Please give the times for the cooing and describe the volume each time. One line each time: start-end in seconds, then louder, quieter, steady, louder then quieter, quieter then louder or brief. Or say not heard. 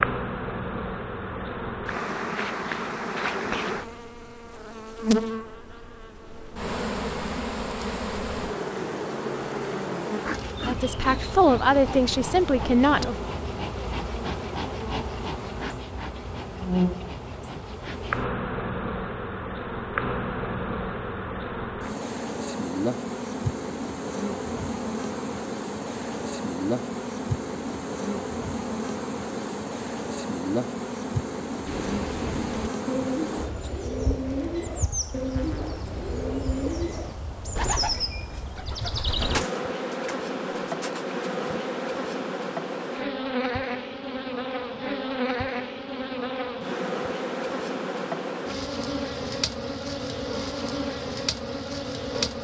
31.6-41.6 quieter.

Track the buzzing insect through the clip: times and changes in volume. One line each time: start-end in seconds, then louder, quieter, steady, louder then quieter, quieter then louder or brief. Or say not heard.
0.0-52.3 steady.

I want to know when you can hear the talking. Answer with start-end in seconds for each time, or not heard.
10.7-13.2.